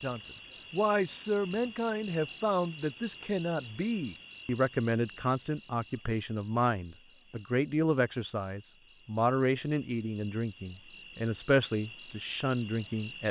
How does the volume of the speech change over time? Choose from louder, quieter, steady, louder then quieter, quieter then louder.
steady.